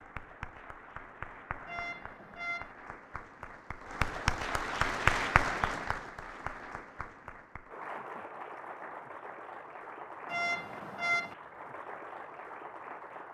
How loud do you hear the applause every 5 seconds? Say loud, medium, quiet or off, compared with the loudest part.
loud, loud, medium.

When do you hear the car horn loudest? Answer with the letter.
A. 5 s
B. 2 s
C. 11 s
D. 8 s
C.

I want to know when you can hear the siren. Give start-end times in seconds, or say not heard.
not heard.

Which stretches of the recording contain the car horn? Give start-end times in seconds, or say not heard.
1.6-2.8, 10.2-11.3.